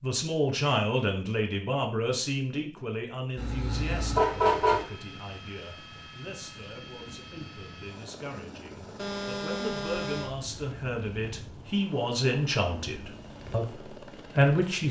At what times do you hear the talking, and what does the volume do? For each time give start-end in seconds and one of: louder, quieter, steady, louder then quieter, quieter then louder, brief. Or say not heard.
0.0-14.8 quieter then louder.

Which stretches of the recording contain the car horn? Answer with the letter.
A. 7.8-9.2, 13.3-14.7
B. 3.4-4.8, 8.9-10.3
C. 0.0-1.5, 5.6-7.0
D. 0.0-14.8
B.